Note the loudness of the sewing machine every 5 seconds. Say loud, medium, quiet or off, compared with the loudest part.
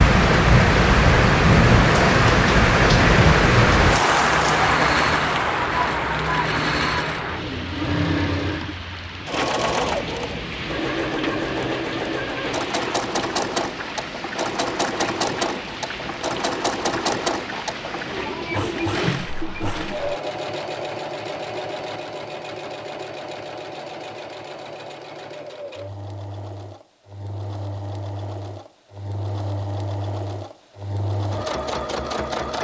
loud, loud, loud, loud, medium, medium, loud.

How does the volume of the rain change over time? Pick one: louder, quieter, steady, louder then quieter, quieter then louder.
quieter.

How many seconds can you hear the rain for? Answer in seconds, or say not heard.
20 s.